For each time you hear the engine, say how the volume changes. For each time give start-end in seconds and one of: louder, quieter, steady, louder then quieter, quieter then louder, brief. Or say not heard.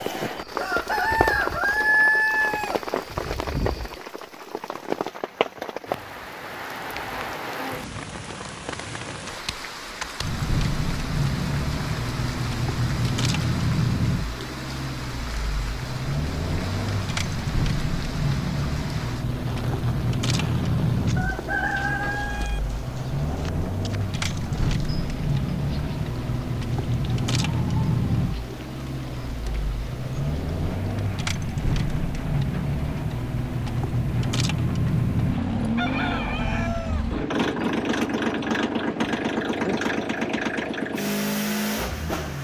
10.2-42.3 steady.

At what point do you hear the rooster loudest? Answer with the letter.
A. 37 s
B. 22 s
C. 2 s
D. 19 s
C.